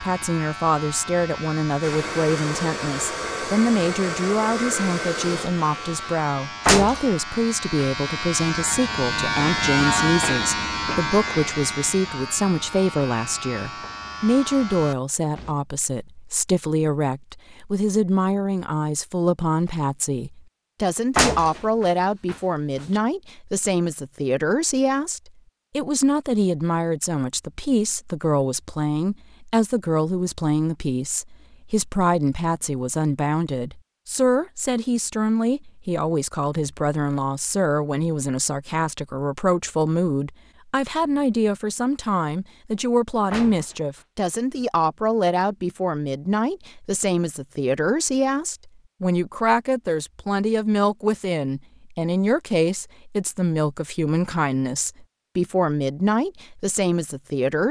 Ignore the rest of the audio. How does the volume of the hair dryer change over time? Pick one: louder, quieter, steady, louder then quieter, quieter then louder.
steady.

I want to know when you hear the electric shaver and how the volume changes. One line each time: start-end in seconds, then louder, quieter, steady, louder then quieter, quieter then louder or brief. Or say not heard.
0.0-15.6 louder then quieter.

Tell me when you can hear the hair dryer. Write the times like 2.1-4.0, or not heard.
1.8-6.2.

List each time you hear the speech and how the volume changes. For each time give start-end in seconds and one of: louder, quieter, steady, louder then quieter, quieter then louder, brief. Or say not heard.
0.0-57.6 steady.